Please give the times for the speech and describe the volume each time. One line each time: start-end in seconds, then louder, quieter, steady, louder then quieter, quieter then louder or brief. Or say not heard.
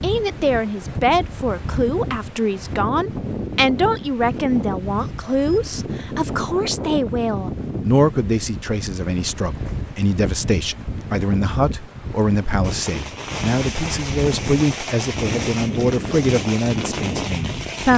0.0-17.9 steady.